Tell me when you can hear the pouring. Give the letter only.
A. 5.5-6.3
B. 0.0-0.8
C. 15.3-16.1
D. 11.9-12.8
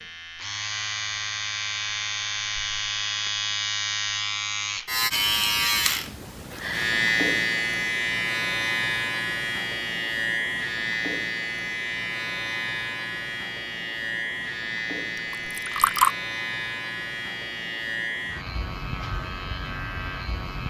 C.